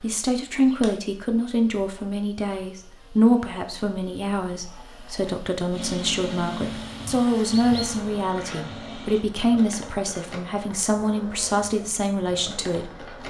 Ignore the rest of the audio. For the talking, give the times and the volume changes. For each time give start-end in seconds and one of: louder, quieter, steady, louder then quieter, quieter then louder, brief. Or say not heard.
0.0-13.1 steady.